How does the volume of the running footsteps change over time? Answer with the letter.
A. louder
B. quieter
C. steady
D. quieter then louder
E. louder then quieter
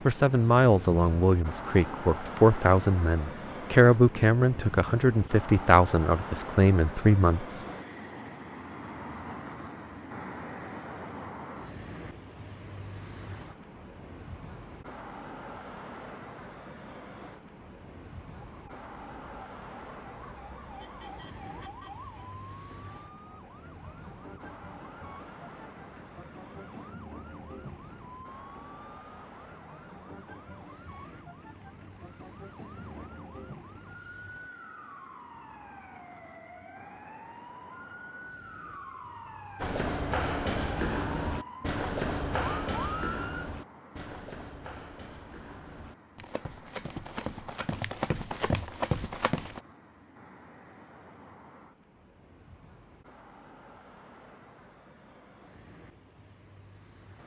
D.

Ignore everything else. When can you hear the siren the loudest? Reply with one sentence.
The loudest moment of the siren is at 43 seconds.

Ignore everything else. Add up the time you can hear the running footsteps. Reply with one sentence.
The running footsteps can be heard for 10 seconds in total.